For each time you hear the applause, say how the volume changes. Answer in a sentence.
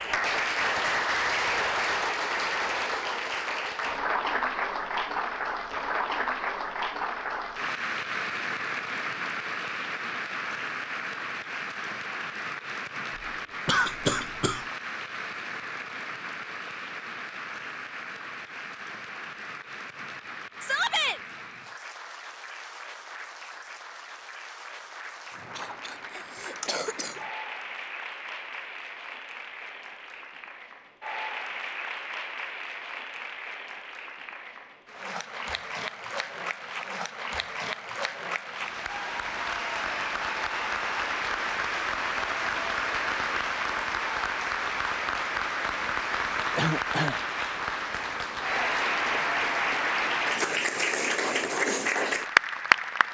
You can hear the applause from 0.0 to 53.0 s, getting quieter then louder.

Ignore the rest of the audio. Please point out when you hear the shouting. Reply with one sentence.
You can hear the shouting from 20.6 to 21.2 s.